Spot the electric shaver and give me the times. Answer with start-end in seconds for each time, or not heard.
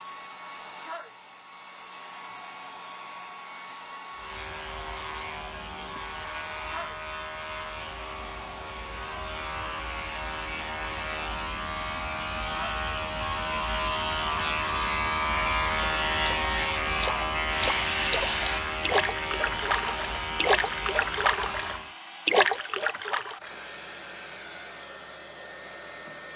4.1-21.9.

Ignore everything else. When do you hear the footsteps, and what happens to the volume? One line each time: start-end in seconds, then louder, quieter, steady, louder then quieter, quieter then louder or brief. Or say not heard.
not heard.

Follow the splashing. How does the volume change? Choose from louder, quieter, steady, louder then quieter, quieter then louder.
louder.